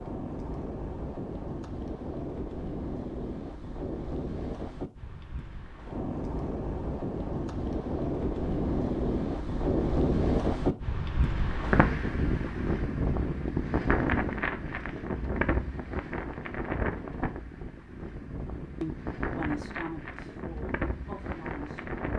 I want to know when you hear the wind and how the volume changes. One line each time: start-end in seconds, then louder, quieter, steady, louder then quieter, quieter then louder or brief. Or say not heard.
0.0-22.1 louder then quieter.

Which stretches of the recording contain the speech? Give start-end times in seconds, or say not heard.
18.8-22.0.